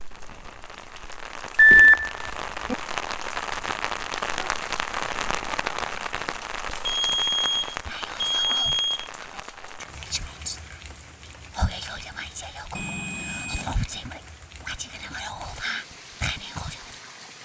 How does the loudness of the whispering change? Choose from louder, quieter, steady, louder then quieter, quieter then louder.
louder.